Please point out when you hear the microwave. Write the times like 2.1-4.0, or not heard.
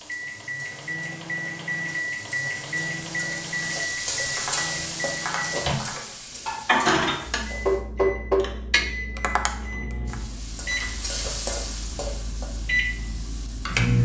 0.0-14.0.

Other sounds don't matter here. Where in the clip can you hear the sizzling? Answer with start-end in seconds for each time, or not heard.
0.0-7.8, 10.1-14.0.